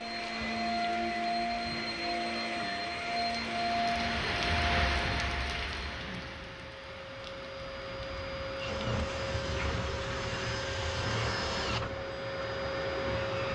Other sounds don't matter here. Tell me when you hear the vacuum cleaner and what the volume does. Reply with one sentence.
You can hear the vacuum cleaner from 0.0 to 13.4 s, getting quieter then louder.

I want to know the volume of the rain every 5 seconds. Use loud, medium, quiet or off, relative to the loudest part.
loud, loud, off.